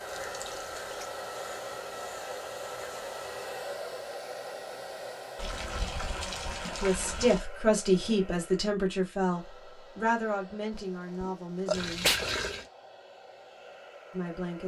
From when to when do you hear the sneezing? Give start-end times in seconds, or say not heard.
10.7-12.2.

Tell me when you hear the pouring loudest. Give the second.
12 s.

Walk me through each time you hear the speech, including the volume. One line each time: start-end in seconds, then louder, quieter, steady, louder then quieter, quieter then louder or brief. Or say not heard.
6.8-12.1 quieter
14.1-14.6 brief.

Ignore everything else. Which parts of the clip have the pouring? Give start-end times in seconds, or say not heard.
0.1-1.1, 5.3-7.4, 11.7-12.7.